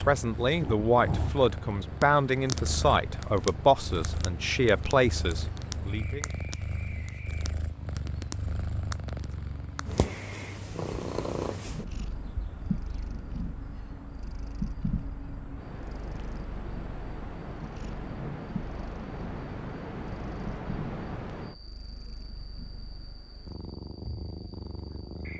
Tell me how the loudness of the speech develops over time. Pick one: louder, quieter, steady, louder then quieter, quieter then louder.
steady.